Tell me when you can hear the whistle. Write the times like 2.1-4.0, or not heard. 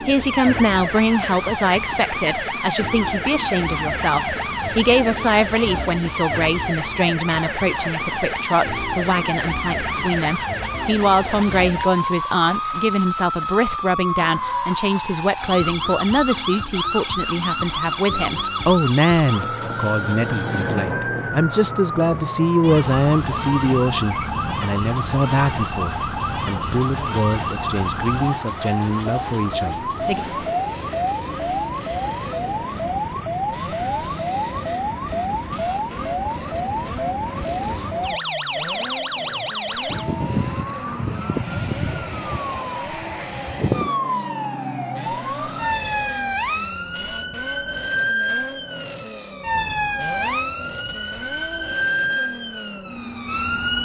not heard.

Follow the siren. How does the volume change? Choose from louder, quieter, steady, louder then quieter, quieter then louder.
steady.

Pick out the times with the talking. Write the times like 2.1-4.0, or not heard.
0.0-30.2.